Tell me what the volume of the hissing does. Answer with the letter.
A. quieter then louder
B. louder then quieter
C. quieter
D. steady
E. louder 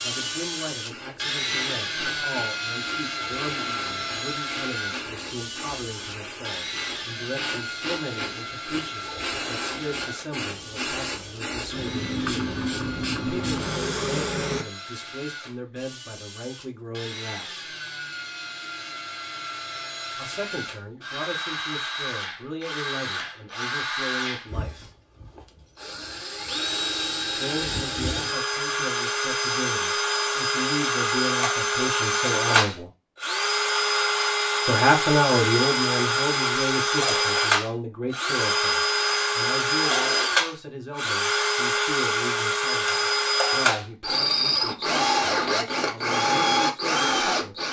E.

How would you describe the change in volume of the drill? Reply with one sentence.
The volume of the drill goes down, then up.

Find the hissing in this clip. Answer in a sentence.
The hissing can be heard from 0.1 to 14.7 s.